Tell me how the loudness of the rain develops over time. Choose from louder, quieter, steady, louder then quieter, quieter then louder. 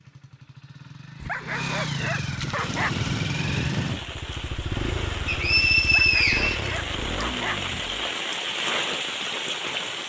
louder.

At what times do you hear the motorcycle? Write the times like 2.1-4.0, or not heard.
0.0-8.2.